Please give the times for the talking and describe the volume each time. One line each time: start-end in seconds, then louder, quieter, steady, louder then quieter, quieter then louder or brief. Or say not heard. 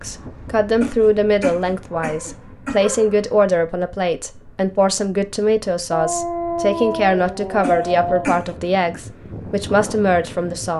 0.0-10.7 steady.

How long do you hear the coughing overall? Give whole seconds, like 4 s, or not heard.
3 s.